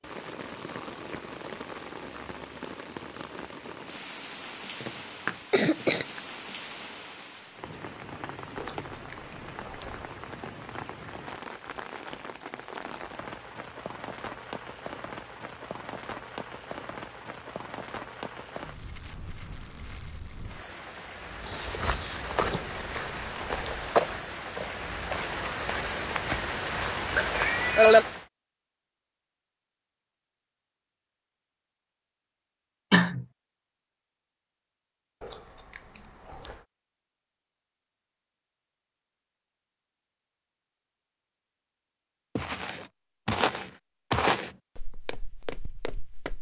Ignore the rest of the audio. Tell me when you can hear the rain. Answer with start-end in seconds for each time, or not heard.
0.0-28.2.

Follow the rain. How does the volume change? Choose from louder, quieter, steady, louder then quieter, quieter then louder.
louder.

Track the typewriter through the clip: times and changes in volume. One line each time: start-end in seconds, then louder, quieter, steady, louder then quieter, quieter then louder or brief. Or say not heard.
not heard.